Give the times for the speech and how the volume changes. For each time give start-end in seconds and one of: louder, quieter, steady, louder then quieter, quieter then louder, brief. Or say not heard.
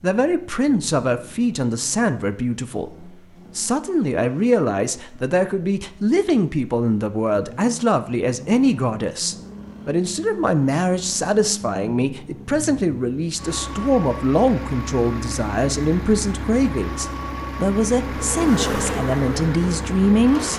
0.0-20.5 steady.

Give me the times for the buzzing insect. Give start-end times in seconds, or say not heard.
18.0-20.5.